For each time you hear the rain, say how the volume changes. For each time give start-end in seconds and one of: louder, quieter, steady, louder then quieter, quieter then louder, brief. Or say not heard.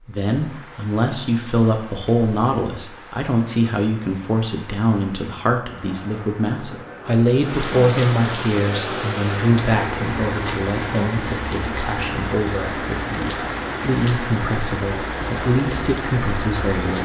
0.0-17.0 louder.